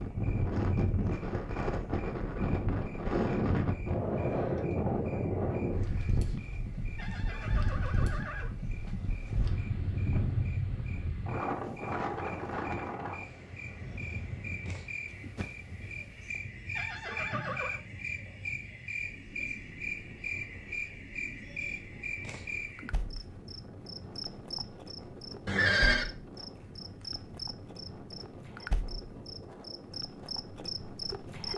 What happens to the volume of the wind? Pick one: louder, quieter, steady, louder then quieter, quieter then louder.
quieter.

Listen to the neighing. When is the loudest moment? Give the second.
26 s.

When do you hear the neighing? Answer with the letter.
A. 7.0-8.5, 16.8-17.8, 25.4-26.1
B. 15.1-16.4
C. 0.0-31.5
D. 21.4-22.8
A.